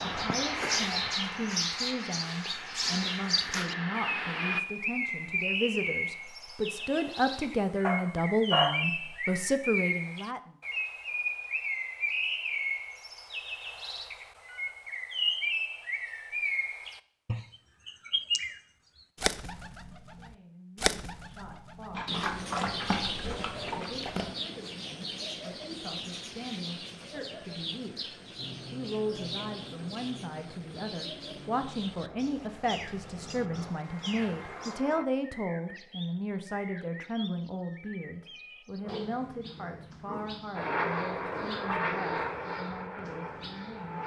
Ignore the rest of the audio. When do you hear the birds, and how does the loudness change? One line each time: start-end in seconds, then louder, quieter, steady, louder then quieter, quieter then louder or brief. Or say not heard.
0.0-44.0 quieter.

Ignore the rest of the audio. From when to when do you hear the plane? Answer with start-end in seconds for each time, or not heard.
0.0-4.6, 28.4-35.0, 40.5-44.0.